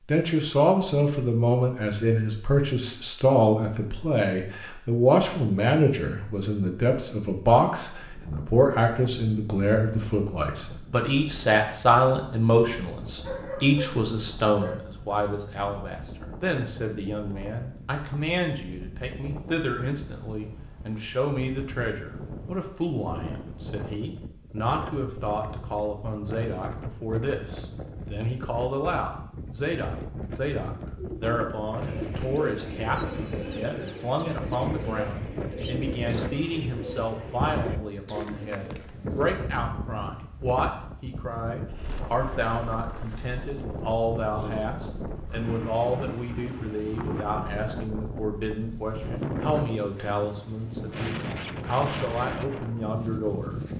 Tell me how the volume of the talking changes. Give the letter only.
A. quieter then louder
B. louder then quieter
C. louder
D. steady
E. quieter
E.